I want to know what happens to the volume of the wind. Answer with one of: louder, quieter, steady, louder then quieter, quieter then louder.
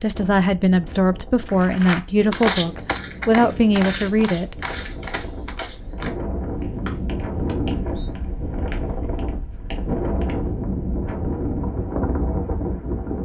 louder.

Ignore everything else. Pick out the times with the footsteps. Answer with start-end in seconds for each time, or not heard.
1.4-10.5.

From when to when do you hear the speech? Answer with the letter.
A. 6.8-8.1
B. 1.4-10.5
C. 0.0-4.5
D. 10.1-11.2
C.